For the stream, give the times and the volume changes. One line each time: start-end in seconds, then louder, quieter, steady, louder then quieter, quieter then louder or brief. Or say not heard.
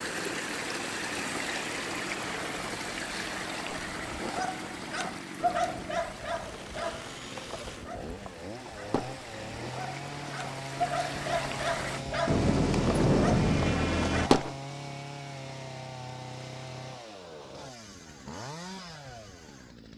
0.0-12.1 quieter then louder.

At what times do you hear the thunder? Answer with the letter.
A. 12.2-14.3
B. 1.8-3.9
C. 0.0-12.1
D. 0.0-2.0
A.